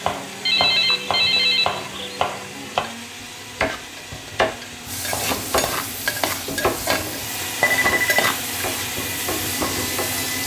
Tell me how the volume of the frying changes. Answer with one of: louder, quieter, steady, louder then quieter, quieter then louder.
louder.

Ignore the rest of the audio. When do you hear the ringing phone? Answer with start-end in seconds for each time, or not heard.
0.5-2.2, 7.6-8.3.